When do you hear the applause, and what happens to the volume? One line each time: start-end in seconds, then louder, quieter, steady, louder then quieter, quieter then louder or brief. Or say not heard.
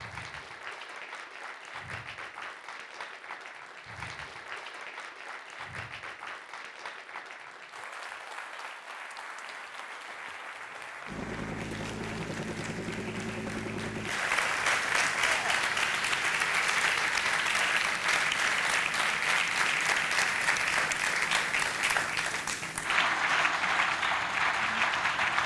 0.0-25.4 louder.